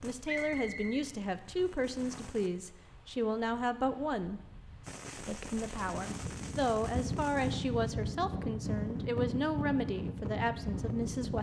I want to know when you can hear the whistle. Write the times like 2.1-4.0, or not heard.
0.2-1.1.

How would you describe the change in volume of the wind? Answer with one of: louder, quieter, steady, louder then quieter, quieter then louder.
louder.